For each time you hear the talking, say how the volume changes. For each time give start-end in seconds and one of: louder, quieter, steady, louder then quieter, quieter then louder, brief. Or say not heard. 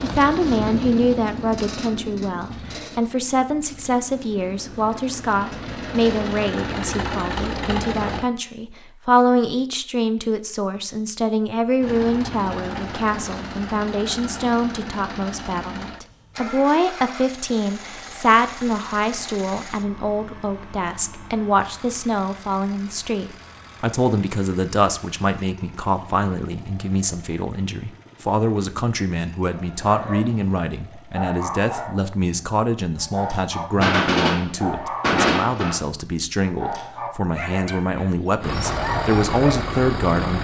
0.0-40.3 steady.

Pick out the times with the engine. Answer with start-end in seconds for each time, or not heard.
0.0-8.3, 11.8-31.3, 38.4-40.3.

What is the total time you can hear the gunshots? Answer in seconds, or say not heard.
2 s.